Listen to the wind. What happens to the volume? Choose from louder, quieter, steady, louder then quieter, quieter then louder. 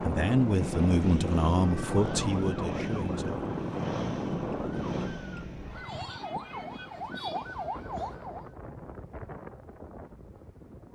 quieter.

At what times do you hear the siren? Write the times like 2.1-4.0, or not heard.
1.6-8.4.